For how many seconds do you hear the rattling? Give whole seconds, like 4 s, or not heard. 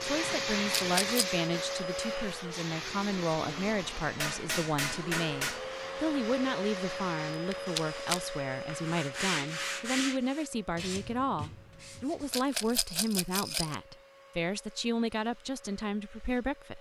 3 s.